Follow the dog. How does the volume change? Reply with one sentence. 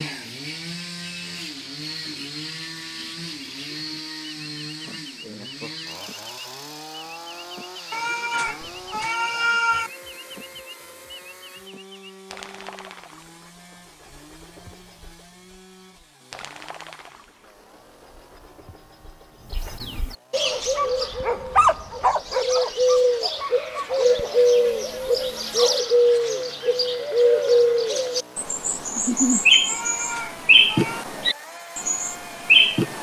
The loudness of the dog goes down.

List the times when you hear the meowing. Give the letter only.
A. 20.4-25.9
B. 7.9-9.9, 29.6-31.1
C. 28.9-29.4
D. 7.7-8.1
B.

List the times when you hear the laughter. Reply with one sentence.
You can hear the laughter from 28.9 to 29.4 s.